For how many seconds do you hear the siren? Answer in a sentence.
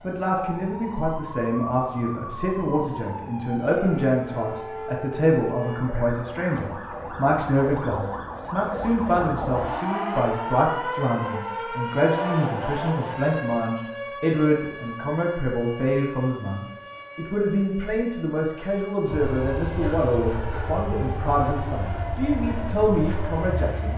The siren can be heard for 24 seconds in total.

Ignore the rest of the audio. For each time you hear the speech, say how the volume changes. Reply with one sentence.
The speech can be heard from 0.0 to 23.9 s, at a steady volume.